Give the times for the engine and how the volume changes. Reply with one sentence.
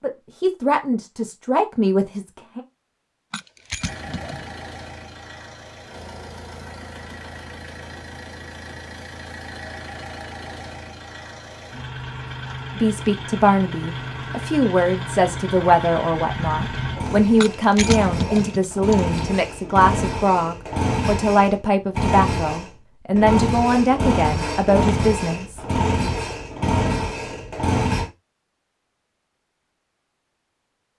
You can hear the engine from 3.8 to 28.1 s, getting louder.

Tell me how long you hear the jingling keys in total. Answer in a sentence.
You can hear the jingling keys for 3 seconds altogether.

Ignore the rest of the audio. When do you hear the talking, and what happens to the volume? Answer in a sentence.
The talking can be heard briefly from 0.0 to 2.6 s; and from 12.8 to 25.6 s, at a steady volume.